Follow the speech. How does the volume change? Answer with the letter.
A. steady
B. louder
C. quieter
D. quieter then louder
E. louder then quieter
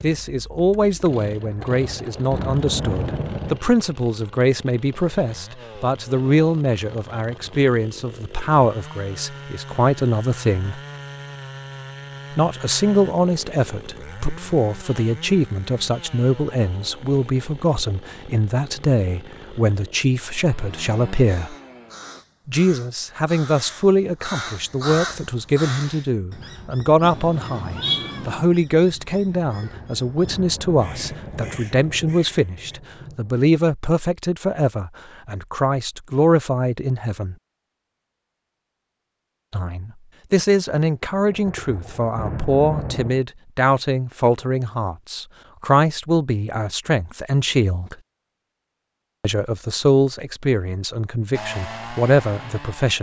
A.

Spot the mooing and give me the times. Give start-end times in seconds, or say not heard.
not heard.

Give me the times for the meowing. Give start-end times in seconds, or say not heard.
27.0-28.4.